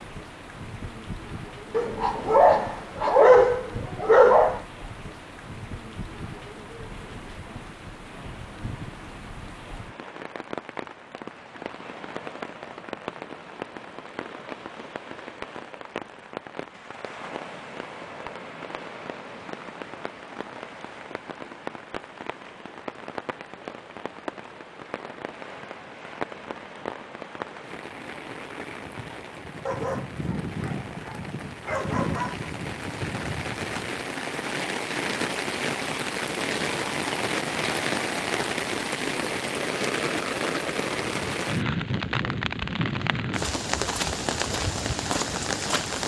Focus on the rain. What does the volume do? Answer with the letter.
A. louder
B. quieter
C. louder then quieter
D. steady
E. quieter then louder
A.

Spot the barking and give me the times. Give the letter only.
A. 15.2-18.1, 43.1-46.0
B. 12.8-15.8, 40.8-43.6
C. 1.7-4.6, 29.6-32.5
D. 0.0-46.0
C.